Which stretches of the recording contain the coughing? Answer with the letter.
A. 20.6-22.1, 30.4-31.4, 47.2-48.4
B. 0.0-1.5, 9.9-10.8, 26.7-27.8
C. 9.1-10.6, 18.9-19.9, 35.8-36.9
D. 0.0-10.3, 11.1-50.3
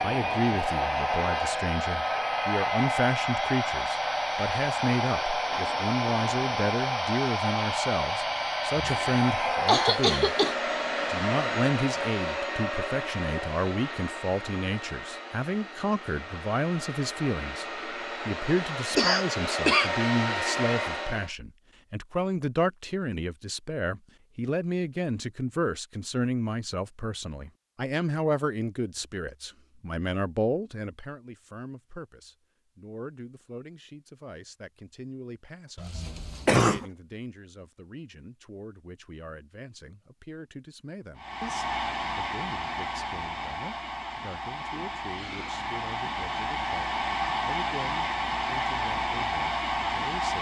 C.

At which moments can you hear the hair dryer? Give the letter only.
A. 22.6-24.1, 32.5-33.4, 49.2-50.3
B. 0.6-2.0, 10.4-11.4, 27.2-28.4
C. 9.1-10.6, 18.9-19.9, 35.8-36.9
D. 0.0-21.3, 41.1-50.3
D.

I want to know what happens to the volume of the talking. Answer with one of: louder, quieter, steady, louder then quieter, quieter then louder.
quieter.